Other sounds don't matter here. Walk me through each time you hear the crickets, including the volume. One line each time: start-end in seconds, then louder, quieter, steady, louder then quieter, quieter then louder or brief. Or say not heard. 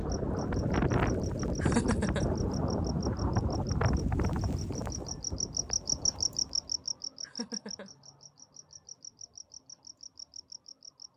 0.0-11.1 louder then quieter.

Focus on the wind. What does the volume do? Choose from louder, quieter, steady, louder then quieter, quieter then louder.
quieter.